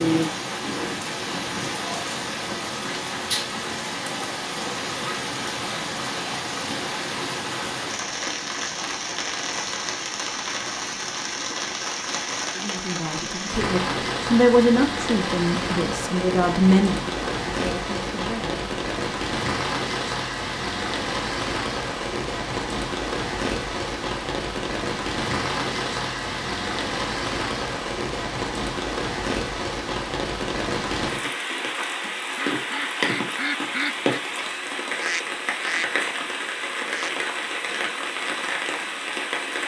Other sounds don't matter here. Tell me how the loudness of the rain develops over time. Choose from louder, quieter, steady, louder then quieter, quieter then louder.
steady.